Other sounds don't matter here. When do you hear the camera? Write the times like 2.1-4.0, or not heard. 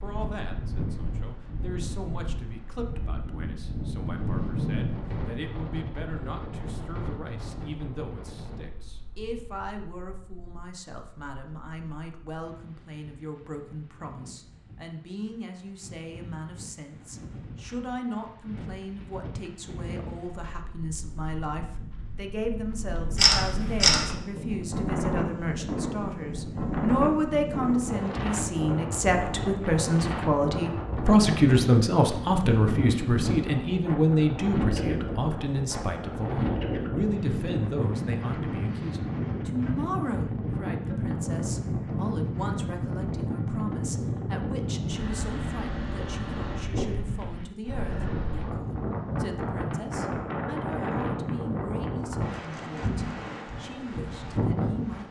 23.1-24.1.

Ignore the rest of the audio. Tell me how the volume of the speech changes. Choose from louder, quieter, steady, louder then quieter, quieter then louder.
louder then quieter.